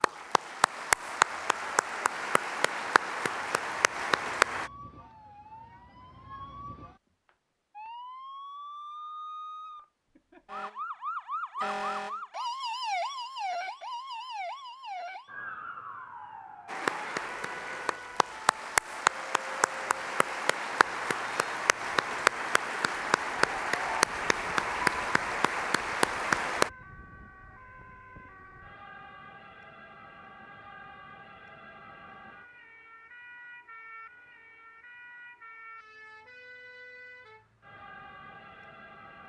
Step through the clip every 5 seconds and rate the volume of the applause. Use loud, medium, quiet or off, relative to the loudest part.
loud, off, off, loud, loud, loud, off, off.